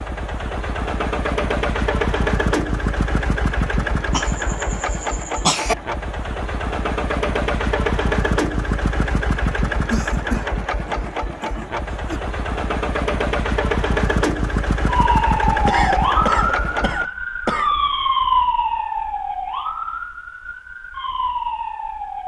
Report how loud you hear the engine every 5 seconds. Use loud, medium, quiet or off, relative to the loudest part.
loud, loud, loud, loud, off.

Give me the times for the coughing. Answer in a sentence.
The coughing can be heard from 4.1 to 5.8 s, from 9.9 to 12.2 s and from 15.7 to 17.8 s.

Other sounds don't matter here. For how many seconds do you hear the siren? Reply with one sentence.
You can hear the siren for 7 seconds altogether.